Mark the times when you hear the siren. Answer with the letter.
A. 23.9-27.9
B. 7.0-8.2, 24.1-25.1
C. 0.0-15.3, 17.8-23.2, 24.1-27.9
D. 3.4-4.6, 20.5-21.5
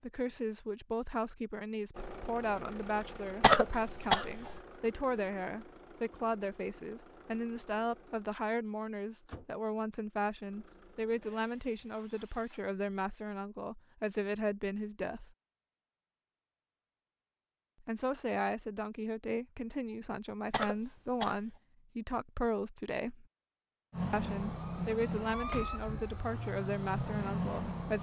A.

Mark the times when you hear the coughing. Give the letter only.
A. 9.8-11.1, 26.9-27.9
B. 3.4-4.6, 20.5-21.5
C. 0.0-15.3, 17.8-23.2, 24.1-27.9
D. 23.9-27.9
B.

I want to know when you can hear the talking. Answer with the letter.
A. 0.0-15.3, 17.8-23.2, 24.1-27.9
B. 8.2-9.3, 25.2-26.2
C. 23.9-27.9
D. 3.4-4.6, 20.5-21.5
A.